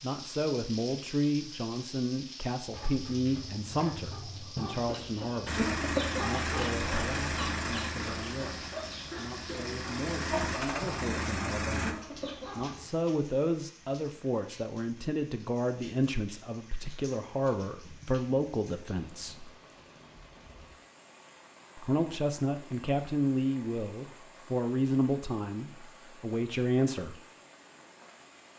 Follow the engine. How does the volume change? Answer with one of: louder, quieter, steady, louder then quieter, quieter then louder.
quieter then louder.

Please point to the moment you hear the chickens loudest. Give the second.
6 s.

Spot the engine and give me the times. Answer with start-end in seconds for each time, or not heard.
5.5-11.9.